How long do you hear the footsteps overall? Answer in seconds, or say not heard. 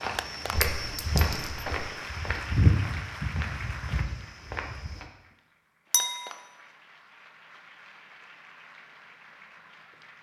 5 s.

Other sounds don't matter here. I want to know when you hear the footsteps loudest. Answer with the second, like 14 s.
3 s.